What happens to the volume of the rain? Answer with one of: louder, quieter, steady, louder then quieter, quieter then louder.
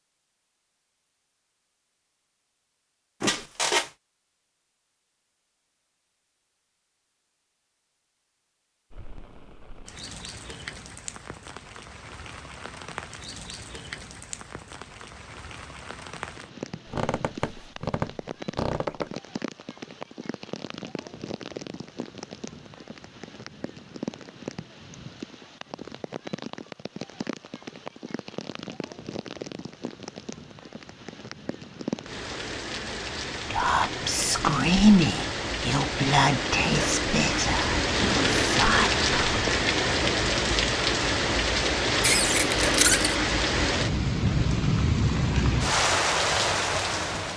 louder.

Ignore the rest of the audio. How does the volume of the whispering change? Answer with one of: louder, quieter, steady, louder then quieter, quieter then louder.
quieter.